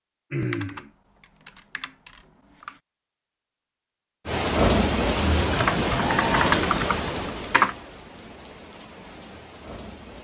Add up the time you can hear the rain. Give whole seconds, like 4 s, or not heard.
6 s.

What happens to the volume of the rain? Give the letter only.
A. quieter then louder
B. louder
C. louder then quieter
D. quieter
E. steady
D.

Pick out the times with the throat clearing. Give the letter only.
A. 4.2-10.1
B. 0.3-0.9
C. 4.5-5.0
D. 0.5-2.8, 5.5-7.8
B.